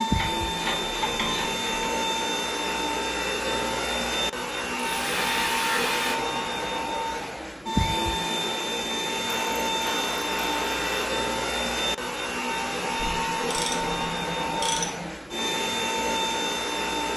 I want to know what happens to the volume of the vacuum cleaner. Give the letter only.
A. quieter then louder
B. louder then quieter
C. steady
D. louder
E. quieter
C.